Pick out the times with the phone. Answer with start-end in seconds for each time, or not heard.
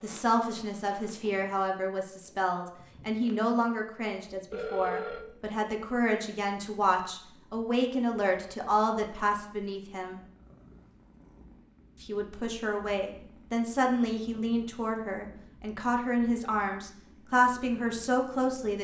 4.5-5.2.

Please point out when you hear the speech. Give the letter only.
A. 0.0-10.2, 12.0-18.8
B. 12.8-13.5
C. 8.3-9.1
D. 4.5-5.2
A.